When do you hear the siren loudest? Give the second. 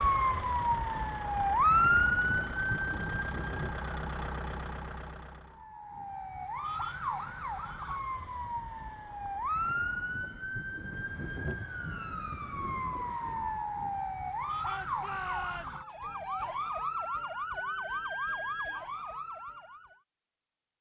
2 s.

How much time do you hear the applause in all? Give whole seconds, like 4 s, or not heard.
not heard.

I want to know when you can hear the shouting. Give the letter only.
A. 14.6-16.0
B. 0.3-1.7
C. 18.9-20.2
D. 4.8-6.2
A.